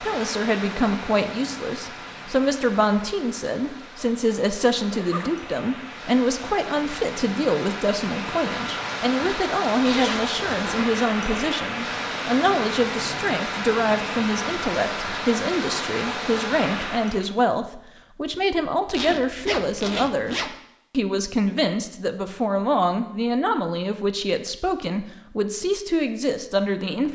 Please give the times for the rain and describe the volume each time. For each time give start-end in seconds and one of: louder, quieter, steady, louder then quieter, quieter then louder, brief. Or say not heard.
0.0-17.3 louder.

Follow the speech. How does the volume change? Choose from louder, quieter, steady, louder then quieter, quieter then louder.
steady.